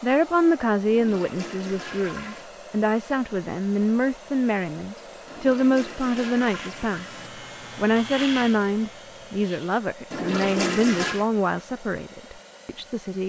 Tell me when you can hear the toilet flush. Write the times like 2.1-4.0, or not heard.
0.9-2.5, 5.2-7.3, 10.1-11.3.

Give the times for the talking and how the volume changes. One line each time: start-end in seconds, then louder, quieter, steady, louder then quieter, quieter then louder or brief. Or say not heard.
0.0-13.2 steady.